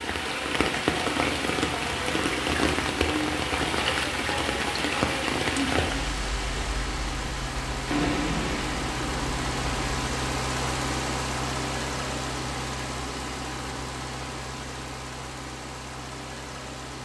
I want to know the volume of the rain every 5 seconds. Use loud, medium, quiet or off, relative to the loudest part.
loud, loud, off, off.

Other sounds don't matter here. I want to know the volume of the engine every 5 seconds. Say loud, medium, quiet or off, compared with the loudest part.
medium, loud, loud, medium.